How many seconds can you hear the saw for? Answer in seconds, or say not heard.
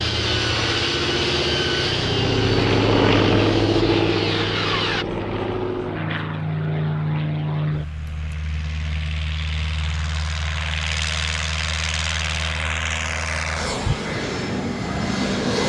5 s.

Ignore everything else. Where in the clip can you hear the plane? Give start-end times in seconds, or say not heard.
0.0-15.6.